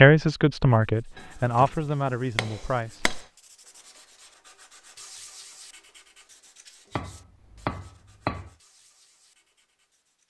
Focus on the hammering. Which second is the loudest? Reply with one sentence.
The volume of the hammering peaks at 8 seconds.